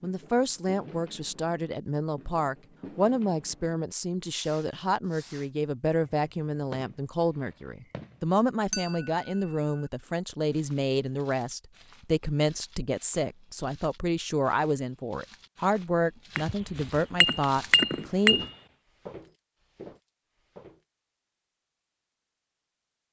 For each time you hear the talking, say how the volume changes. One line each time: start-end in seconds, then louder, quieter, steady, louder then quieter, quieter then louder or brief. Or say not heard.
0.0-18.4 steady.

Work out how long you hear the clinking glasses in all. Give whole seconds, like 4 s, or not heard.
3 s.